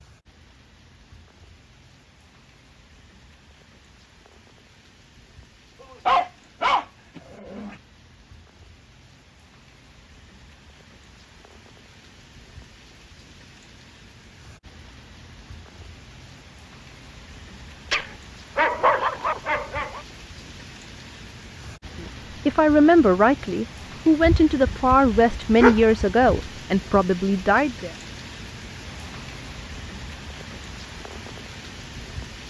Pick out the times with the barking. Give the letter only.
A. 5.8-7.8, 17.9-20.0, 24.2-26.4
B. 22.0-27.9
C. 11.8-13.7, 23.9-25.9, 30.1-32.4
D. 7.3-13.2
A.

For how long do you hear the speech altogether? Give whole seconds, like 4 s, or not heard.
6 s.